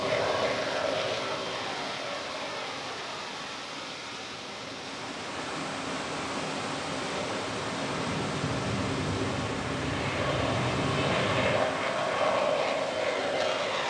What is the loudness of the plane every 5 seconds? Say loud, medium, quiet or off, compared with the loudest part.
medium, medium, loud.